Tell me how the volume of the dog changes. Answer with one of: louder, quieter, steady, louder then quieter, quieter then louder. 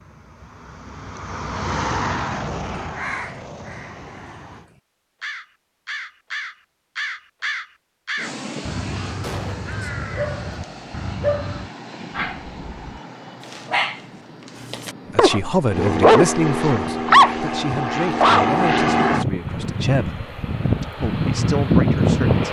quieter then louder.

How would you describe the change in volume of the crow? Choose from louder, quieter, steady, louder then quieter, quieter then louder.
louder.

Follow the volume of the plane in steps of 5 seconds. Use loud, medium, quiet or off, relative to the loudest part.
medium, quiet, quiet, loud, loud.